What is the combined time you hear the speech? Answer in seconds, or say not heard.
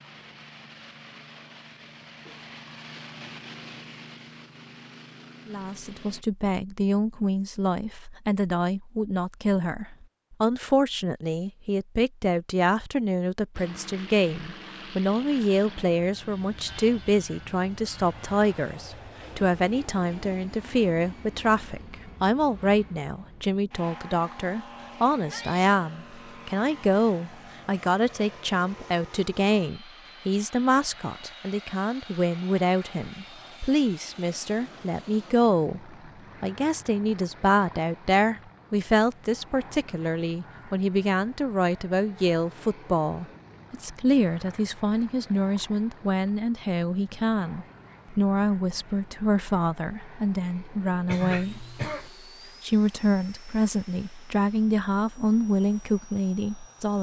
50 s.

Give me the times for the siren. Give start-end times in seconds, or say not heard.
not heard.